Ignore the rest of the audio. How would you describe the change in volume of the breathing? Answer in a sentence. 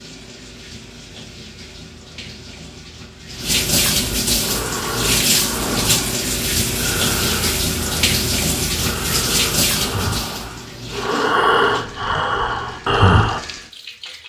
The loudness of the breathing goes up.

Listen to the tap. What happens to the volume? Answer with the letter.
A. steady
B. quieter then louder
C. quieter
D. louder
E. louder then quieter
E.